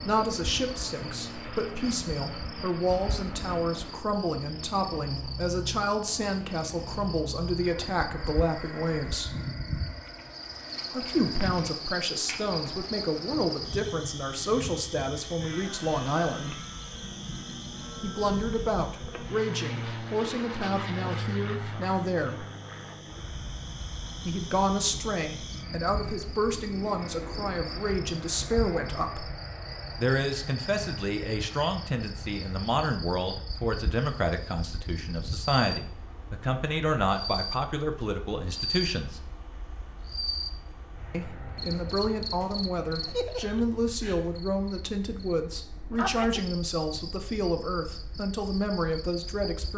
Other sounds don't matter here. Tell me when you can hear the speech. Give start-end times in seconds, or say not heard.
0.0-9.3, 10.9-16.6, 18.0-22.4, 24.2-29.3, 29.9-39.2, 41.1-49.7.